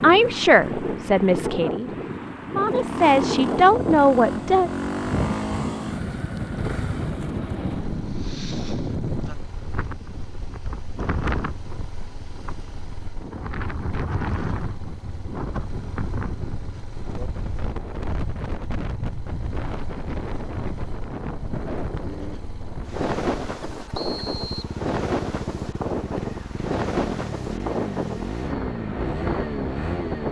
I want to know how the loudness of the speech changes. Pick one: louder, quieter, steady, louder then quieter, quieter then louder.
quieter then louder.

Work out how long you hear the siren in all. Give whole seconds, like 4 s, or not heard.
not heard.